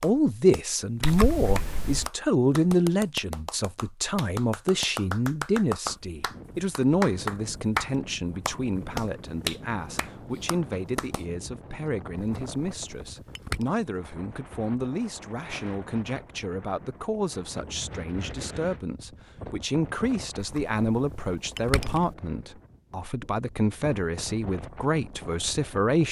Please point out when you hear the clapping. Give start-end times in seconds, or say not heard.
0.0-11.2.